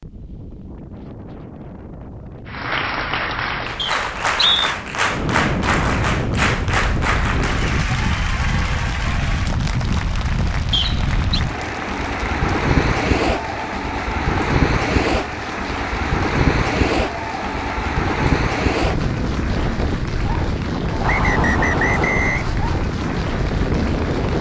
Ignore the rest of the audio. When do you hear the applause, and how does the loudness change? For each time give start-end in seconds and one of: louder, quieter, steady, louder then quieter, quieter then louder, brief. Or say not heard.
2.5-24.3 quieter.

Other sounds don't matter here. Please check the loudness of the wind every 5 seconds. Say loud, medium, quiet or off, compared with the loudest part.
quiet, loud, loud, loud, loud.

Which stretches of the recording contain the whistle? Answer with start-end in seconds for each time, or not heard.
3.8-4.7, 10.7-11.4, 21.0-22.6.